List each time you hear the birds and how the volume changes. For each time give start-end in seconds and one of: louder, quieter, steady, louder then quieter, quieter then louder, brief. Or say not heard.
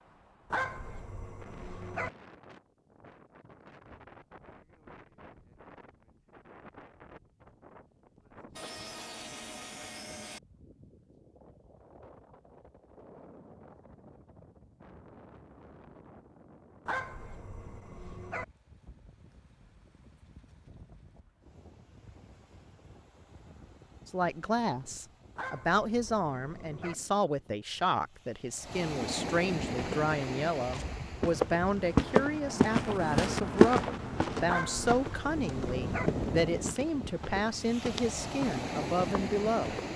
not heard.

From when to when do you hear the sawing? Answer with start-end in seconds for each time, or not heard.
8.6-10.4.